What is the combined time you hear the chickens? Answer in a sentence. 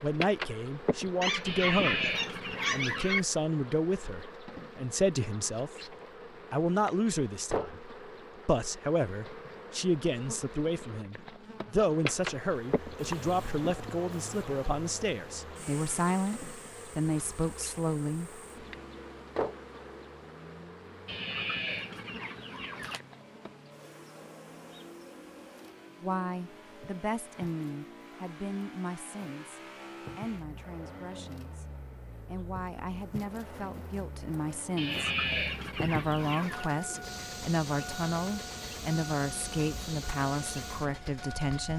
You can hear the chickens for 6 seconds altogether.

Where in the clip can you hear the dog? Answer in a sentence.
You can hear the dog from 1.2 to 3.2 s.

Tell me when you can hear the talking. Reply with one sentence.
You can hear the talking from 0.0 to 18.4 s and from 26.0 to 41.7 s.